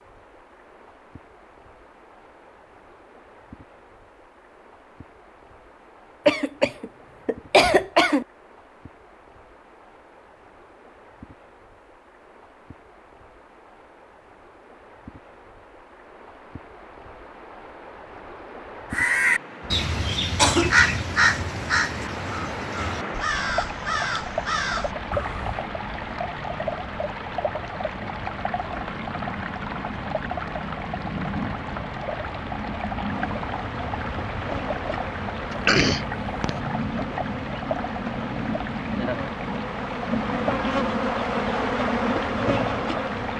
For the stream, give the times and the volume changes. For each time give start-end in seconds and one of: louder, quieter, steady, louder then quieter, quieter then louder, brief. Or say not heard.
0.0-43.3 louder.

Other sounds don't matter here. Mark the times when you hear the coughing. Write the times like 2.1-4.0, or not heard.
6.2-8.2, 19.6-20.8, 35.5-36.5.